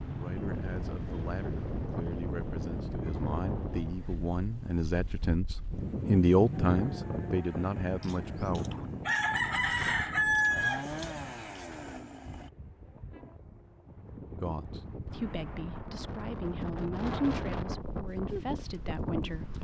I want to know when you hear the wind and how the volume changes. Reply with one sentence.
You can hear the wind from 0.0 to 19.5 s, getting quieter then louder.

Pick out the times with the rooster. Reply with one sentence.
The rooster can be heard from 8.0 to 11.7 s.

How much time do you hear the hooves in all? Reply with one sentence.
The hooves can't be heard in this clip.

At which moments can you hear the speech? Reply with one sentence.
The speech can be heard from 0.1 to 8.7 s and from 14.4 to 19.5 s.